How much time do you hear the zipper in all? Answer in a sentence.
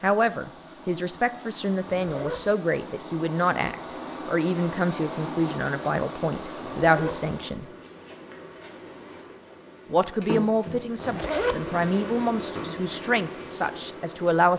You can hear the zipper for 2 seconds altogether.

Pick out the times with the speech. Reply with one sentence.
The speech can be heard from 0.0 to 7.7 s and from 9.9 to 14.5 s.